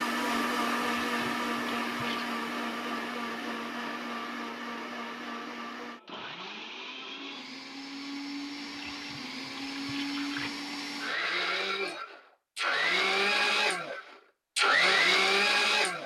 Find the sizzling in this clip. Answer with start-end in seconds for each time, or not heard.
not heard.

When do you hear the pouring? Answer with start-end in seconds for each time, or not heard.
0.8-2.3, 8.7-10.5.